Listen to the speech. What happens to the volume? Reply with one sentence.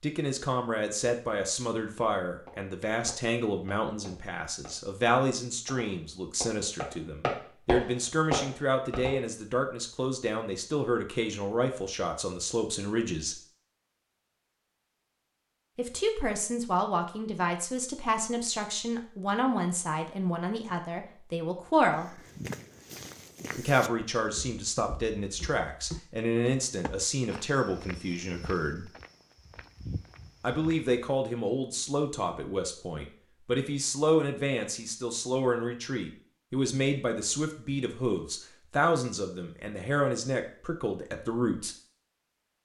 The volume of the speech stays about the same.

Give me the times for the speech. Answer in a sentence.
You can hear the speech from 0.0 to 13.4 s, from 15.8 to 22.2 s, from 23.6 to 28.9 s and from 30.4 to 41.8 s.